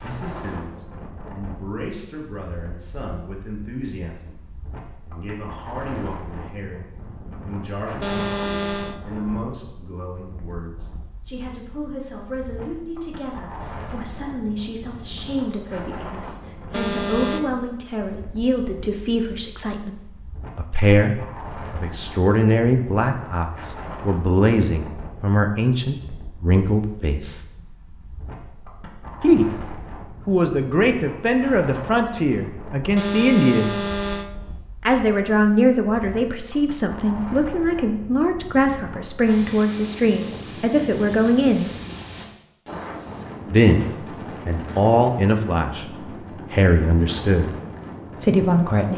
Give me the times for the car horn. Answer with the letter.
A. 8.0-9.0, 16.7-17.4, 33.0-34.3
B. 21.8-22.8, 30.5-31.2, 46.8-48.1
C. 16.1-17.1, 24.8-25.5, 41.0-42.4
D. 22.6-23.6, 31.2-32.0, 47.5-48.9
A.